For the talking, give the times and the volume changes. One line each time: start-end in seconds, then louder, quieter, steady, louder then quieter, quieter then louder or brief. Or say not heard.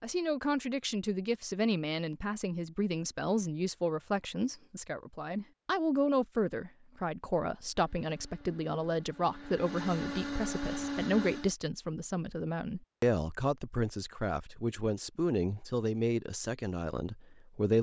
0.0-17.7 steady.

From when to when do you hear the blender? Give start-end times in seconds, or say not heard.
7.7-11.6.